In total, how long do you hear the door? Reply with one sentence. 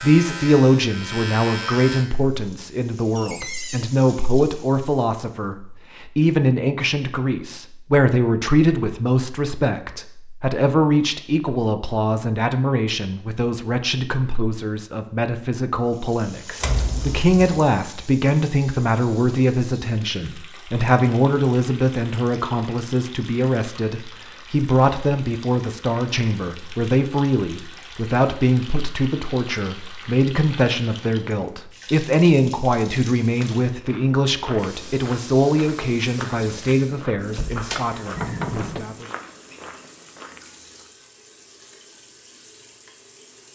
You can hear the door for 3 seconds altogether.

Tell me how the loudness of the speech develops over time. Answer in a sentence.
The volume of the speech stays about the same.